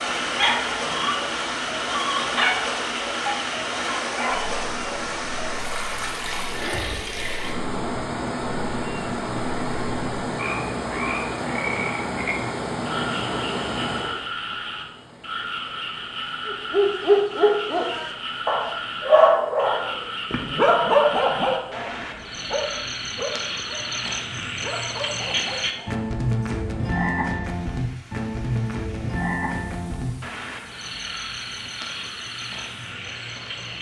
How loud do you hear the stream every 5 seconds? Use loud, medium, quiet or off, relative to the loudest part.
loud, loud, loud, quiet, quiet, quiet, quiet.